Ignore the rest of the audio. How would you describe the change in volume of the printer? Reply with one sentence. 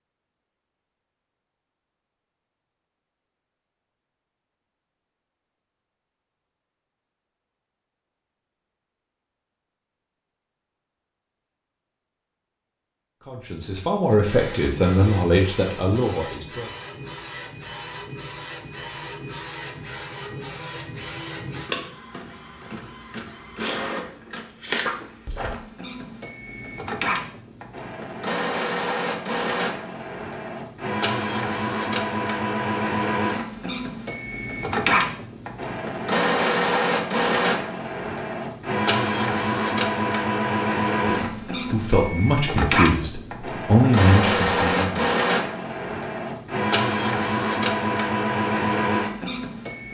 The volume of the printer goes up.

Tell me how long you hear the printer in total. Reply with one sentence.
The printer can be heard for 36 seconds in total.